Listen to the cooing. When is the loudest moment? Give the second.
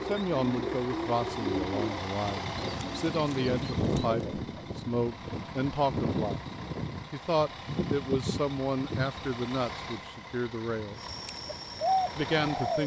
12 s.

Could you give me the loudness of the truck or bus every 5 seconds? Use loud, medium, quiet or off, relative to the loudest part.
loud, loud, medium.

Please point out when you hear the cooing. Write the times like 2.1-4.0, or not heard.
0.0-4.5, 10.9-12.8.